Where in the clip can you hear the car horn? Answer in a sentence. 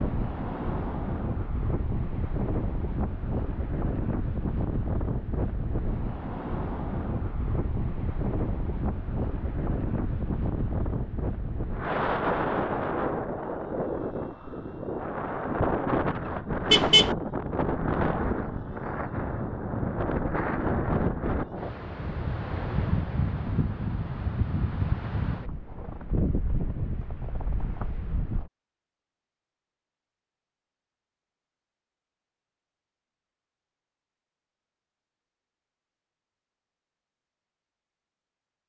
The car horn can be heard from 16.7 to 17.1 s.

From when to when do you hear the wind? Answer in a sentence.
You can hear the wind from 0.0 to 28.5 s.